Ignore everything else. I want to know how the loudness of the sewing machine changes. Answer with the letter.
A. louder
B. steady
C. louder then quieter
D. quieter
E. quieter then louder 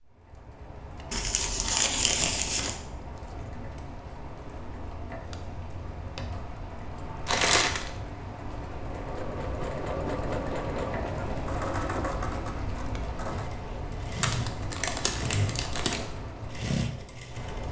E.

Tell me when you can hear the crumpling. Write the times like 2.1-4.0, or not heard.
1.1-2.8, 7.2-7.9, 14.2-16.1.